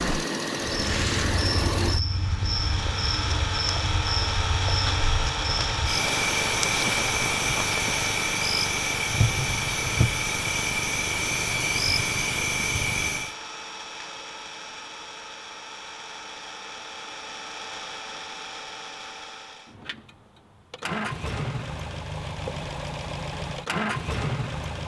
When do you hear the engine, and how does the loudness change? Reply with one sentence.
You can hear the engine from 0.0 to 24.8 s, getting quieter then louder.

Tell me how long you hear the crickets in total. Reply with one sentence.
You can hear the crickets for 13 seconds altogether.